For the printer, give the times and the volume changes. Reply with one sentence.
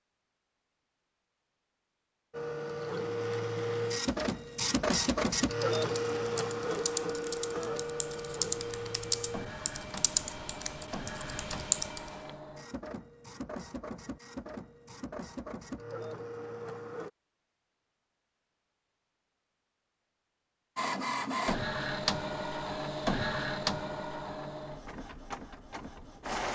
You can hear the printer from 2.3 to 17.1 s, getting quieter; and from 20.8 to 26.5 s, getting quieter.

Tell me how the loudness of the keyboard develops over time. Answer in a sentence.
The volume of the keyboard goes up.